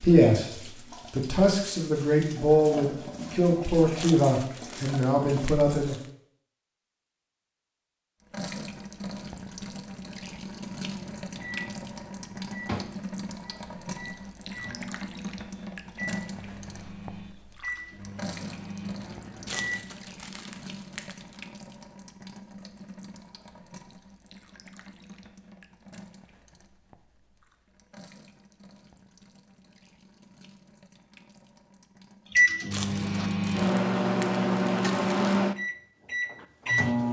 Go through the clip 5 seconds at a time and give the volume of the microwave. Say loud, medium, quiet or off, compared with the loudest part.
off, off, quiet, quiet, off, off, loud, loud.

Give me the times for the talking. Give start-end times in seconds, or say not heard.
0.0-6.0.